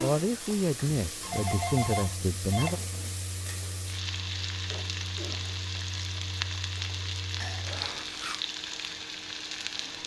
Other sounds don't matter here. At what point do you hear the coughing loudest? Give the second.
8 s.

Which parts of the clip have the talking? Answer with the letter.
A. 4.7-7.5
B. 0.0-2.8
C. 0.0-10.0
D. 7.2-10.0
B.